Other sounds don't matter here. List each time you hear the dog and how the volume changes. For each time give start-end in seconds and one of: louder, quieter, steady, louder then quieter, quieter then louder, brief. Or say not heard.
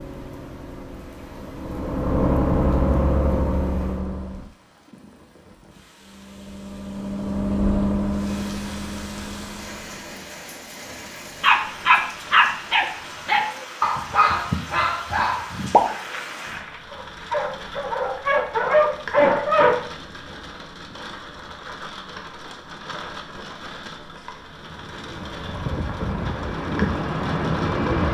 11.4-19.8 quieter then louder.